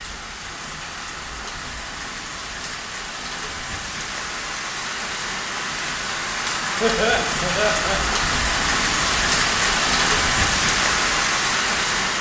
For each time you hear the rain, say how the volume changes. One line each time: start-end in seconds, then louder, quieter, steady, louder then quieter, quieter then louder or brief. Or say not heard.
0.0-12.1 louder.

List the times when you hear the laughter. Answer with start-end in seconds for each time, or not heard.
6.8-8.0.